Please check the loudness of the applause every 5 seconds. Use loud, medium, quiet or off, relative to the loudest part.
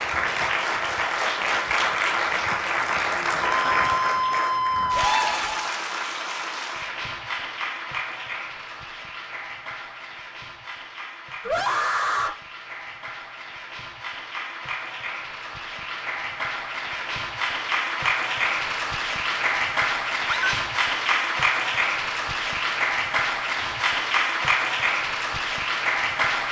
loud, medium, quiet, loud, loud, loud.